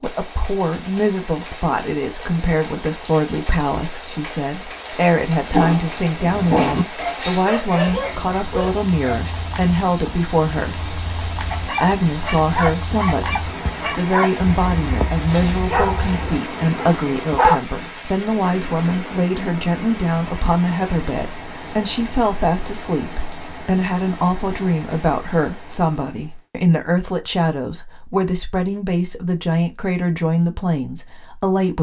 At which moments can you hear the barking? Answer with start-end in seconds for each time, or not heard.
5.5-9.3, 11.5-17.6.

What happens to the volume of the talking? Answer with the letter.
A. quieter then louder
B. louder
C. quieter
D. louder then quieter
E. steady
E.